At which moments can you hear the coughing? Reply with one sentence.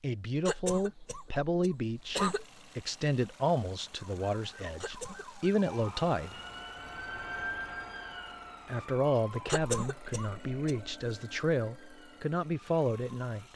The coughing can be heard from 0.5 to 2.5 s, from 4.8 to 5.4 s and from 9.4 to 10.8 s.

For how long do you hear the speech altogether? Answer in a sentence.
You can hear the speech for 11 seconds altogether.